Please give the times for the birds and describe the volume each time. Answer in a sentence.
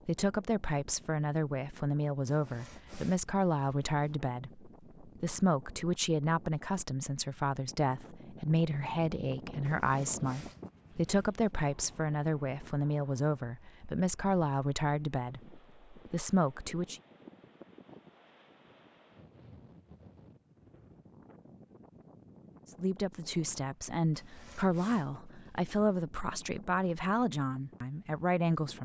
You can't hear the birds here.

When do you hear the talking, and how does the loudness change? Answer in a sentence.
You can hear the talking from 0.1 to 17.0 s, at a steady volume; and from 22.8 to 28.7 s, at a steady volume.